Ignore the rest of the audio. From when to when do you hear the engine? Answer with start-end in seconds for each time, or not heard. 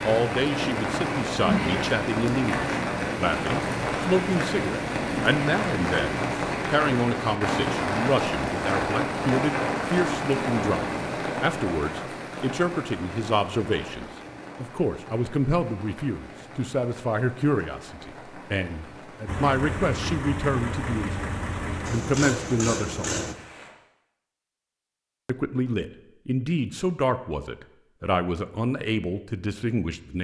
19.2-23.4.